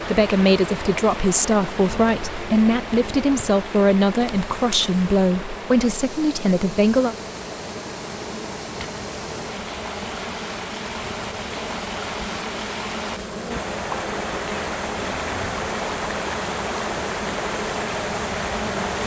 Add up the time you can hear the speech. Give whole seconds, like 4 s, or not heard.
7 s.